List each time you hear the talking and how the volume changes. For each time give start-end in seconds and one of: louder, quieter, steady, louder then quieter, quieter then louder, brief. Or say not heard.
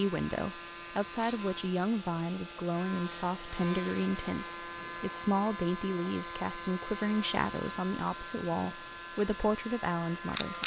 0.0-10.6 steady.